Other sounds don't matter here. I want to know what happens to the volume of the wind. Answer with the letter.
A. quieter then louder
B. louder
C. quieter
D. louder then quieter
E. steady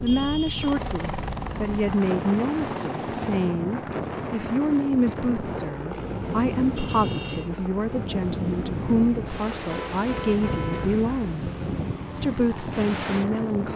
E.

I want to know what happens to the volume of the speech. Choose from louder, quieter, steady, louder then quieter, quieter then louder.
steady.